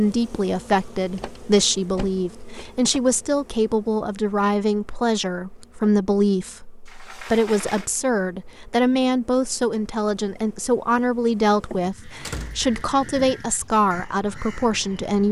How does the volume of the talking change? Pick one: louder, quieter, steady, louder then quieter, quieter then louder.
steady.